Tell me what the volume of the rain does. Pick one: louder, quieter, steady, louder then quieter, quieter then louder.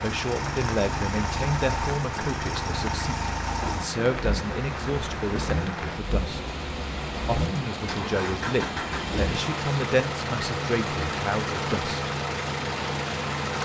steady.